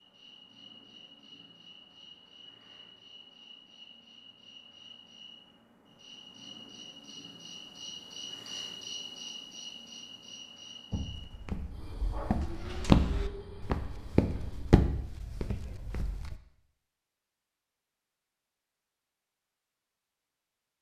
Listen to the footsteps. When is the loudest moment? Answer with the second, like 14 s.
13 s.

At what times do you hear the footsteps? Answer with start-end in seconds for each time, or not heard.
10.9-16.4.